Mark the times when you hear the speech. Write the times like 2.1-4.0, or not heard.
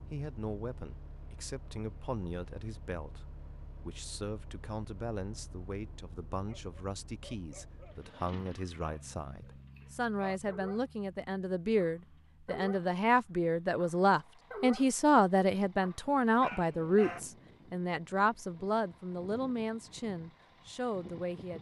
0.0-21.5.